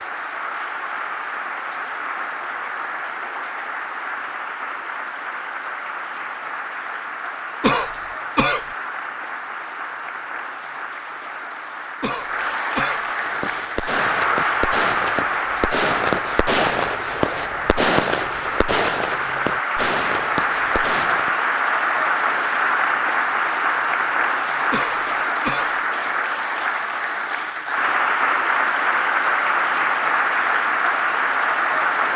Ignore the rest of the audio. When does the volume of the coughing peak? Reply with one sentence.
The loudest moment of the coughing is at 8 seconds.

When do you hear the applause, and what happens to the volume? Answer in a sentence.
You can hear the applause from 0.0 to 32.1 s, getting louder.